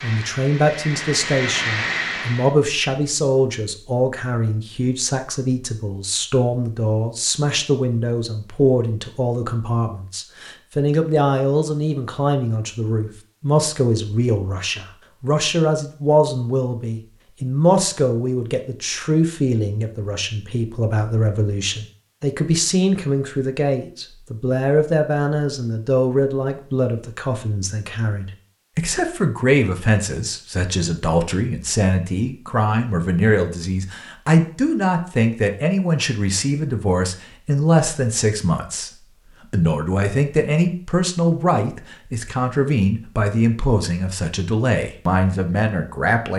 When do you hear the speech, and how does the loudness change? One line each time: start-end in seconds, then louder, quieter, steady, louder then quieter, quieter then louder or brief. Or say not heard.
0.0-46.3 steady.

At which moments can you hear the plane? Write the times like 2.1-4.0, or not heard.
0.0-2.5.